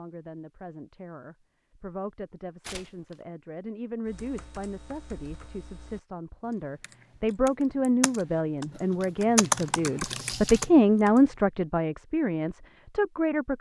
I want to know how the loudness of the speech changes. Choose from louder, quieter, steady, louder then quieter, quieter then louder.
louder.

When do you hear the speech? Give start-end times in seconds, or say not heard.
0.0-13.5.